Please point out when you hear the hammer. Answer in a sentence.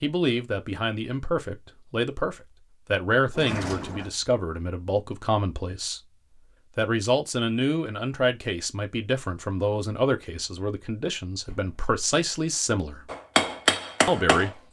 You can hear the hammer from 13.1 to 14.5 s.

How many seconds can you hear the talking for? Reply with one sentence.
You can hear the talking for 13 seconds altogether.